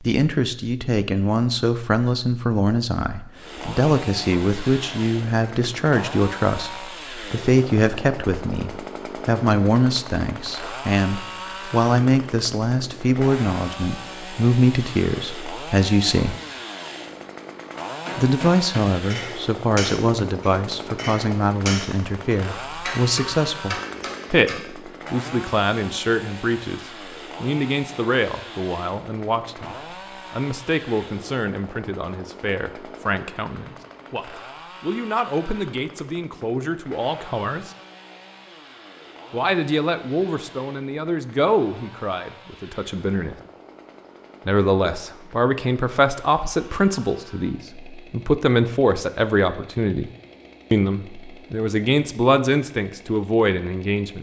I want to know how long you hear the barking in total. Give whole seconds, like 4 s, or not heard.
not heard.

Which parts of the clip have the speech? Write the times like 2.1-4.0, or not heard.
0.0-16.4, 18.1-26.8, 27.4-37.7, 39.3-43.4, 44.5-50.1, 50.7-54.1.